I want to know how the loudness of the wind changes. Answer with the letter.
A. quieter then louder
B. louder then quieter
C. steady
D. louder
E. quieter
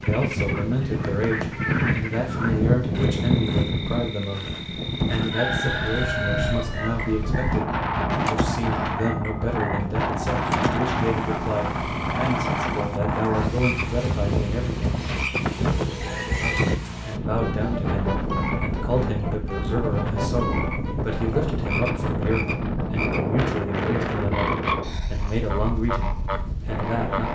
C.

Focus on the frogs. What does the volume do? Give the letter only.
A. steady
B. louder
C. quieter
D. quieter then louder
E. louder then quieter
A.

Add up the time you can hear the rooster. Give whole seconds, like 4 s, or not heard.
3 s.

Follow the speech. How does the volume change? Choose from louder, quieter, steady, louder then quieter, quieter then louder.
steady.